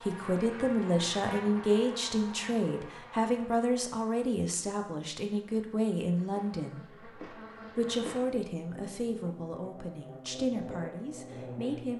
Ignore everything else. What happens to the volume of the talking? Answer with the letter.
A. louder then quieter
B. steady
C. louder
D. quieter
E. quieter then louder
D.